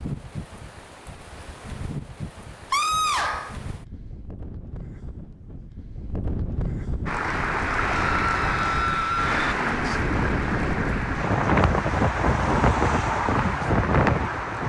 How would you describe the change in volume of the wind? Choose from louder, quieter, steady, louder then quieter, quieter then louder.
louder.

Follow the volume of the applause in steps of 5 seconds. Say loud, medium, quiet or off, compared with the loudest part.
off, loud, medium.